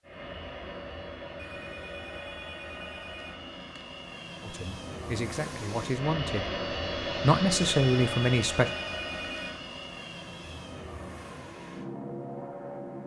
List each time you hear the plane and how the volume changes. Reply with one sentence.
You can hear the plane from 0.0 to 13.0 s, getting louder then quieter.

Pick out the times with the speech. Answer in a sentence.
You can hear the speech from 4.4 to 6.5 s and from 7.2 to 8.7 s.